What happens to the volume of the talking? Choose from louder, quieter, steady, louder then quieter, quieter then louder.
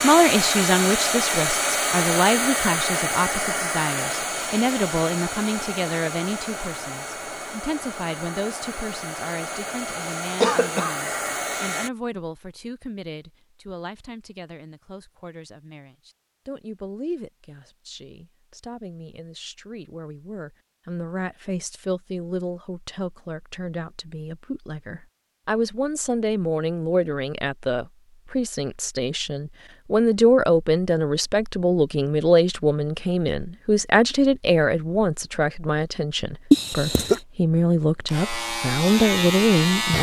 quieter then louder.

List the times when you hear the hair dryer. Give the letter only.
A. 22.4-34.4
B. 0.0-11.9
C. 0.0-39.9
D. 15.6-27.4
B.